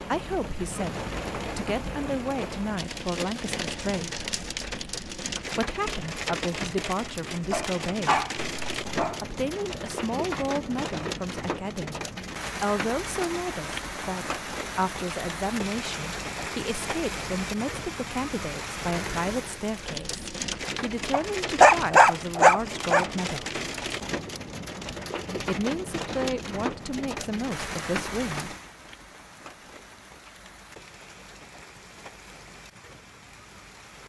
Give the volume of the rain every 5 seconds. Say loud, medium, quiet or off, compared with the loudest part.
loud, loud, loud, loud, loud, loud, quiet.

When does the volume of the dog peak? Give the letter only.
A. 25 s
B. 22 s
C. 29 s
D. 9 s
B.